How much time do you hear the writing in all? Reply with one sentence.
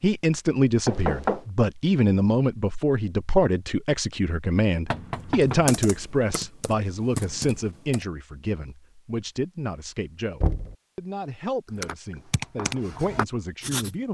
The writing can be heard for 2 seconds in total.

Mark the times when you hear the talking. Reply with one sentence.
You can hear the talking from 0.0 to 14.0 s.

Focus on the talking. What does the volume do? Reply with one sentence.
The volume of the talking goes down.